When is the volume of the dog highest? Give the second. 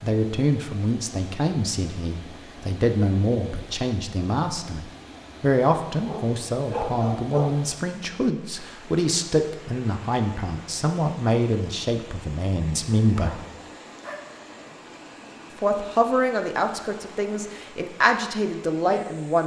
7 s.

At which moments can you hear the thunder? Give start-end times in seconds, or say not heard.
not heard.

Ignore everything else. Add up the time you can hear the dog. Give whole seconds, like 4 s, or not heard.
3 s.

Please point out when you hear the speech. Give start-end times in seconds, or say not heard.
0.0-13.4, 15.6-19.4.